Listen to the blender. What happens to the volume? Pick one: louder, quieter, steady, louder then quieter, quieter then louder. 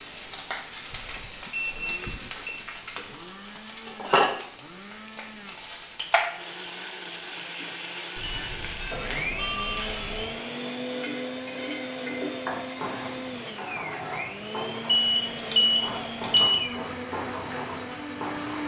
louder.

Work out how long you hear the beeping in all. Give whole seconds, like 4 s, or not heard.
5 s.